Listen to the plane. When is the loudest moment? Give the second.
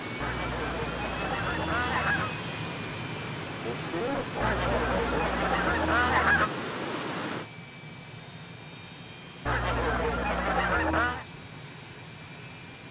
2 s.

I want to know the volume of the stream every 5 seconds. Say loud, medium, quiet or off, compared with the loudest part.
medium, loud, off.